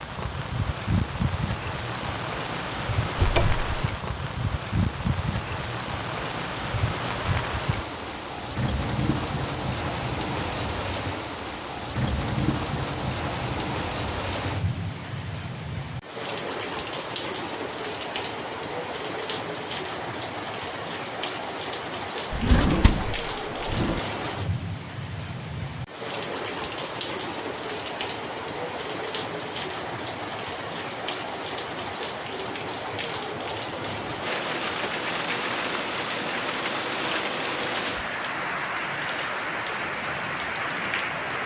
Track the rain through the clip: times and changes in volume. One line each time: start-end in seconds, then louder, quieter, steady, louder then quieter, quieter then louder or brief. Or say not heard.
0.0-41.4 steady.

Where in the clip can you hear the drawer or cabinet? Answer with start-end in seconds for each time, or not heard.
3.1-3.6, 22.3-24.0.